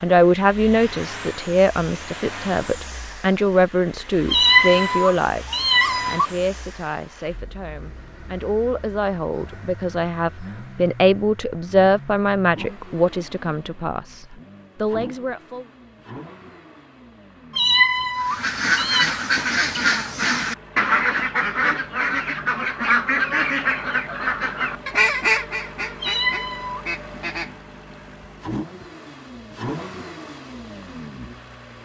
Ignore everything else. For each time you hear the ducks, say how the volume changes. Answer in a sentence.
You can hear the ducks from 18.2 to 27.6 s, getting quieter.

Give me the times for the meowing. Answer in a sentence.
You can hear the meowing from 4.3 to 6.3 s, from 17.6 to 19.1 s and from 26.0 to 26.8 s.